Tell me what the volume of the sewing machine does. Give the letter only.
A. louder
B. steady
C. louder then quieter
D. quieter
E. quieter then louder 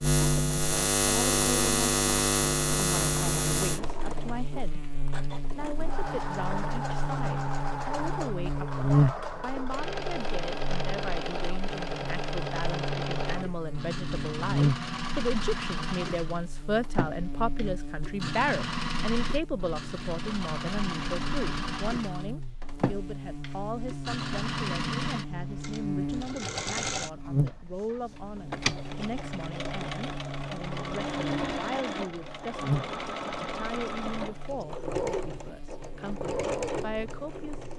B.